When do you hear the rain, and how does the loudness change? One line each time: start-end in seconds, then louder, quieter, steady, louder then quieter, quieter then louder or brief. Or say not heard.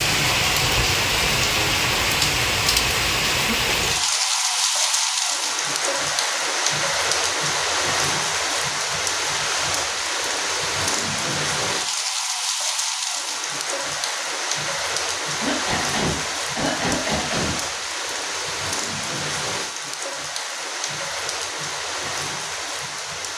0.0-23.3 quieter.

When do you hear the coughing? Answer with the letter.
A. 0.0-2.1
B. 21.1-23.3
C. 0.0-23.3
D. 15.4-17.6
D.